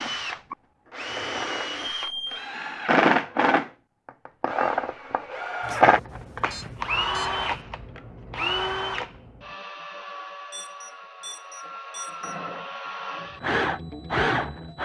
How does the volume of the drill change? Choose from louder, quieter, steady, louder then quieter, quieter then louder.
quieter then louder.